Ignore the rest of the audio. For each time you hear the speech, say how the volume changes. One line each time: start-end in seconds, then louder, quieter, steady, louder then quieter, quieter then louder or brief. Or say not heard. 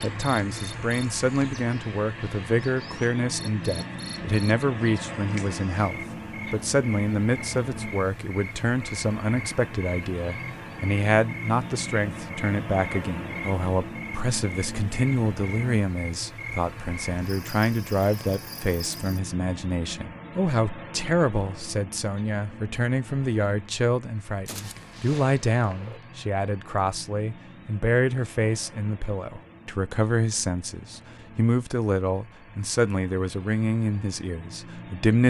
0.0-35.2 steady.